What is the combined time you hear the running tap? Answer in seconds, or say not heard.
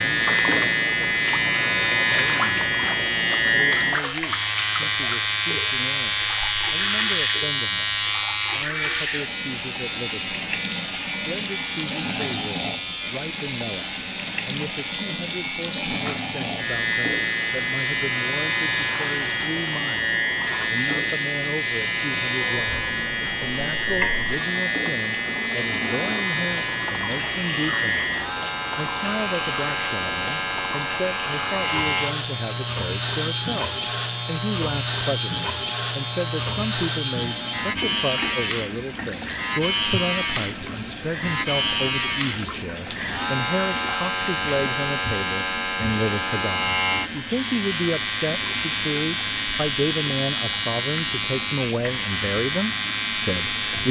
54 s.